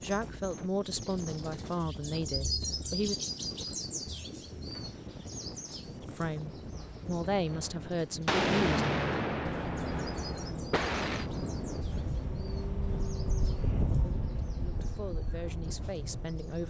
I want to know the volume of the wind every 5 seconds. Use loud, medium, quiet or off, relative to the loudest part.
medium, medium, loud, medium.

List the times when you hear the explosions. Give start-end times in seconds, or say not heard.
8.2-11.3.